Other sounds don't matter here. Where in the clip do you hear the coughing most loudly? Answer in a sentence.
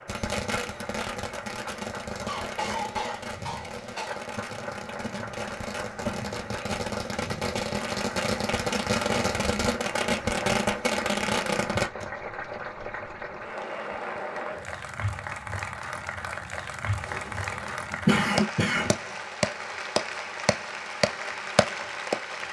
The loudest moment of the coughing is at 18 seconds.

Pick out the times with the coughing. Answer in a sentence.
You can hear the coughing from 2.2 to 4.2 s and from 17.1 to 18.9 s.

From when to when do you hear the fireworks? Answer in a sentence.
The fireworks can be heard from 0.1 to 12.1 s.